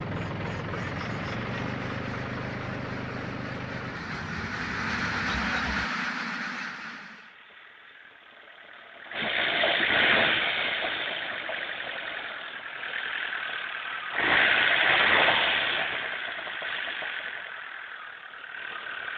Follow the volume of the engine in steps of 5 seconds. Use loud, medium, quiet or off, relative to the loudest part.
medium, medium, loud, loud.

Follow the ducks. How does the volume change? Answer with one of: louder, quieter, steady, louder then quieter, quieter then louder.
louder.